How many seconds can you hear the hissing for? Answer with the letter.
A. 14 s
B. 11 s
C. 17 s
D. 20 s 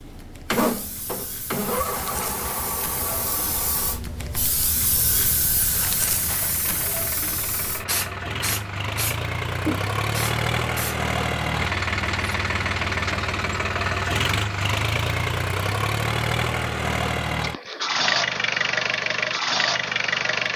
B.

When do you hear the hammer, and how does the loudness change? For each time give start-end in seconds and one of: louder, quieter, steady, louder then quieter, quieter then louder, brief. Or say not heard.
not heard.